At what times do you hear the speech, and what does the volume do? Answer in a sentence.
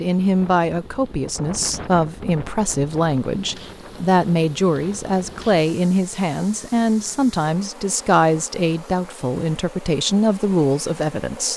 The speech can be heard from 0.0 to 11.5 s, at a steady volume.